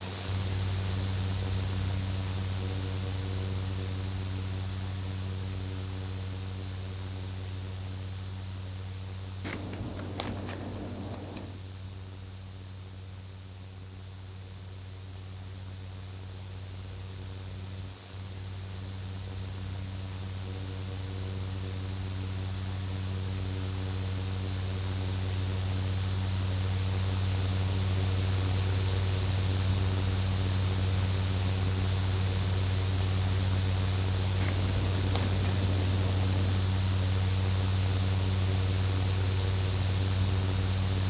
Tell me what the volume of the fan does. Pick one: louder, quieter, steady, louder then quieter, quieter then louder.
quieter then louder.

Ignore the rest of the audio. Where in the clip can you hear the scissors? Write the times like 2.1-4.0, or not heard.
9.4-11.6, 34.4-36.6.